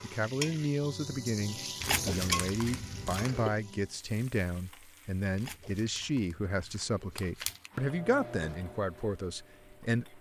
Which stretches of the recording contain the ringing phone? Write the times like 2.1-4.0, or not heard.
not heard.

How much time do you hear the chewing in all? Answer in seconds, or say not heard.
4 s.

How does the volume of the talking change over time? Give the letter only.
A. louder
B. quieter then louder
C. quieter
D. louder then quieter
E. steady
E.